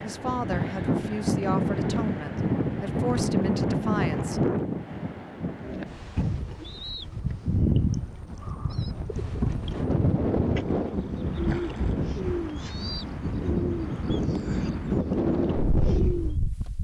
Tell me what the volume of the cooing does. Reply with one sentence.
The volume of the cooing goes down.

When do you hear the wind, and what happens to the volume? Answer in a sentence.
The wind can be heard from 0.0 to 16.8 s, getting quieter then louder.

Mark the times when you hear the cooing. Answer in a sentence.
The cooing can be heard from 5.6 to 16.4 s.